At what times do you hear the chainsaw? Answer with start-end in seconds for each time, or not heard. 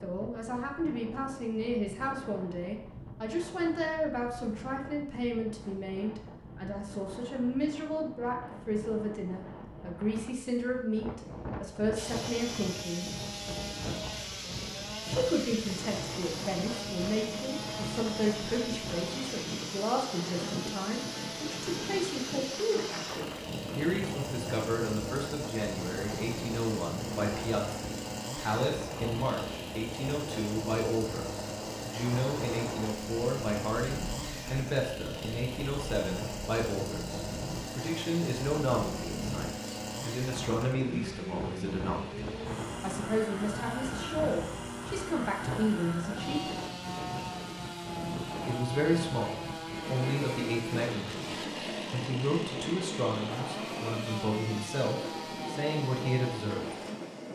11.9-57.2.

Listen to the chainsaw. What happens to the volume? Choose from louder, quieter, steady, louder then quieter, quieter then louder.
steady.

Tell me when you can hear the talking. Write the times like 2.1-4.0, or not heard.
0.0-13.1, 15.1-46.5, 48.5-56.8.